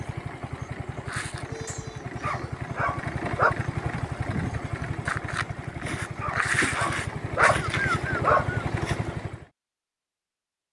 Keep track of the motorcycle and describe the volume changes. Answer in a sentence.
The loudness of the motorcycle goes up.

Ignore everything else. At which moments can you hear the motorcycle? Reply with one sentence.
The motorcycle can be heard from 0.0 to 9.4 s.